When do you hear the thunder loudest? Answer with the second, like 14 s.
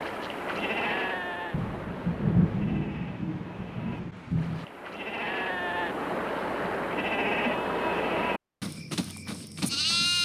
2 s.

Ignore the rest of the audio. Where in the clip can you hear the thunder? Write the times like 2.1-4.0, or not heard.
1.5-4.7.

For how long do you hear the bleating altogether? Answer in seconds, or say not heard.
10 s.